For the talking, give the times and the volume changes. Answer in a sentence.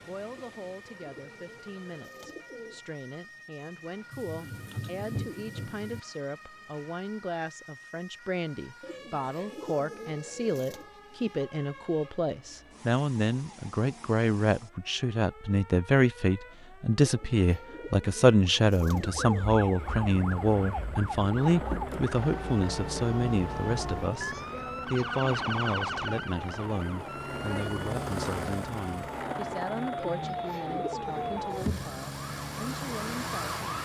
You can hear the talking from 0.1 to 33.6 s, getting louder then quieter.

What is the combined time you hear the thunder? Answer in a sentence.
You can hear the thunder for 2 seconds altogether.